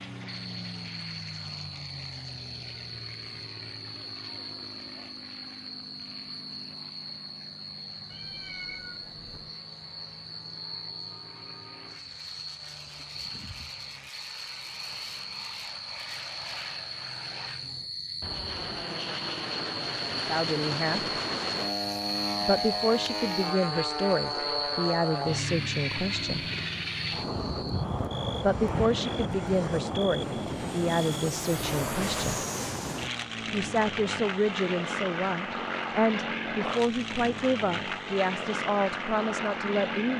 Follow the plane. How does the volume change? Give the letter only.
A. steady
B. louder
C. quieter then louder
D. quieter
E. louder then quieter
B.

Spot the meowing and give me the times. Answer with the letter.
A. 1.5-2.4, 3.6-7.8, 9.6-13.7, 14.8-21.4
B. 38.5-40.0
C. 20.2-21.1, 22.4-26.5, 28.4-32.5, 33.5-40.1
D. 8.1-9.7
D.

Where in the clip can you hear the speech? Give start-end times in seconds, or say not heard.
20.2-21.1, 22.4-26.5, 28.4-32.5, 33.5-40.1.